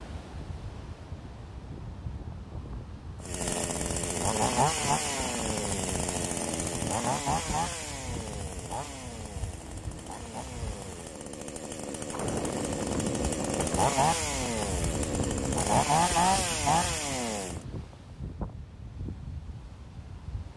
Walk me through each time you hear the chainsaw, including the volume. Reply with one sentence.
The chainsaw can be heard from 3.2 to 17.6 s, getting quieter then louder.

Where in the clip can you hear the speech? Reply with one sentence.
The speech can't be heard in this clip.